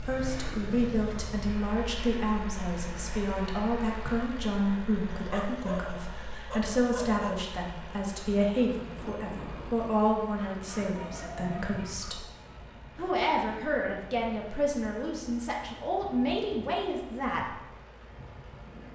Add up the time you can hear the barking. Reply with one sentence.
The barking can be heard for 4 seconds in total.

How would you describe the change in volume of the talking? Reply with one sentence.
The loudness of the talking stays about the same.